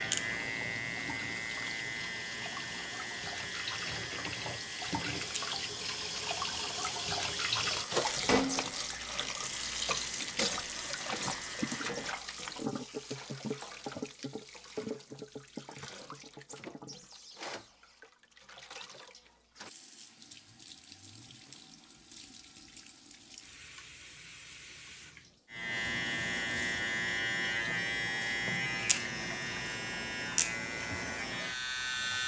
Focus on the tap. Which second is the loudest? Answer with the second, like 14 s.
8 s.